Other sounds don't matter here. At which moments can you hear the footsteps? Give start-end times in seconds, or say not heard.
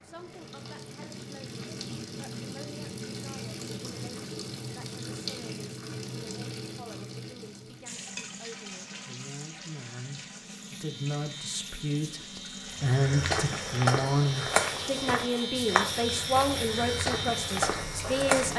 12.8-18.5.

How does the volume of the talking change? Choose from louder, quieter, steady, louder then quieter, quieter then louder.
louder.